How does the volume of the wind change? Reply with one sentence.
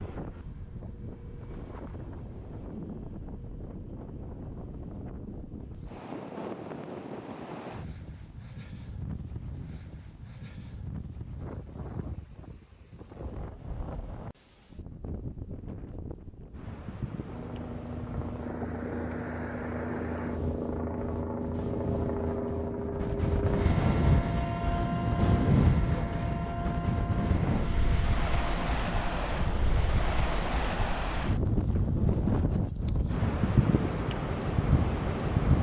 The volume of the wind goes up.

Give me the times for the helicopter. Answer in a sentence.
You can hear the helicopter from 17.2 to 31.2 s.